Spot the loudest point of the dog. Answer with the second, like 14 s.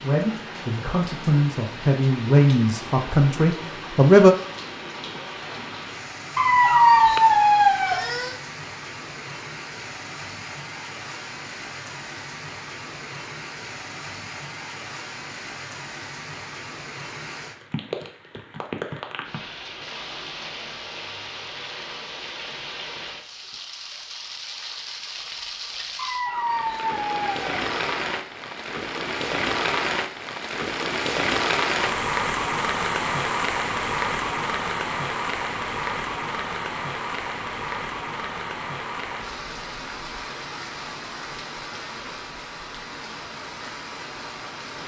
7 s.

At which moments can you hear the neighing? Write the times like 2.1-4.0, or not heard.
not heard.